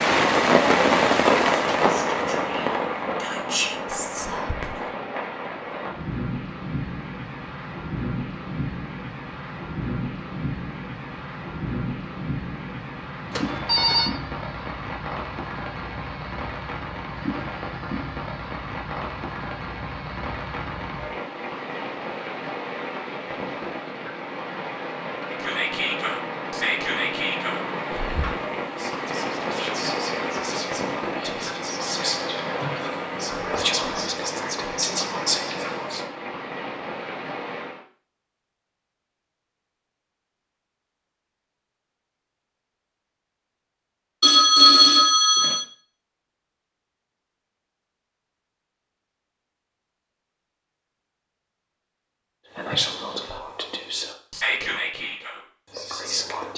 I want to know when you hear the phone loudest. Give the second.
45 s.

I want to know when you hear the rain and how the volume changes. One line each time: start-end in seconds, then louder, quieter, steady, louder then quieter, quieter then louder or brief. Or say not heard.
0.0-37.8 quieter.